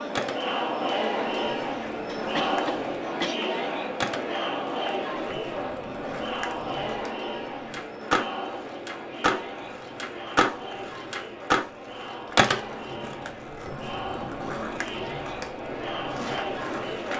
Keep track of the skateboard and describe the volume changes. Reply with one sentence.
The volume of the skateboard goes up, then down.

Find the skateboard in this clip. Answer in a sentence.
The skateboard can be heard from 0.1 to 17.1 s.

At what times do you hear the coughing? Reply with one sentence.
You can hear the coughing from 2.0 to 3.4 s.